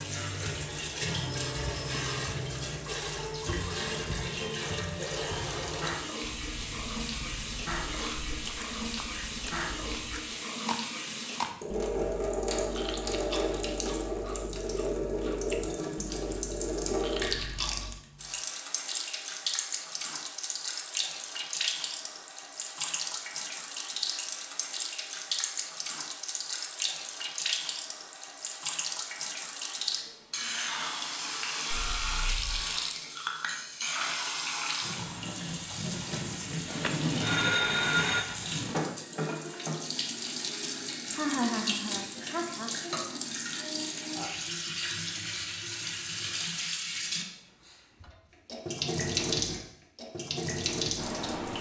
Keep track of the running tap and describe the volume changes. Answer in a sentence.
The volume of the running tap stays about the same.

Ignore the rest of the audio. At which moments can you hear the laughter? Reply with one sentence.
You can hear the laughter from 41.1 to 42.7 s.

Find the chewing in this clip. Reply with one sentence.
You can hear the chewing from 6.2 to 17.9 s.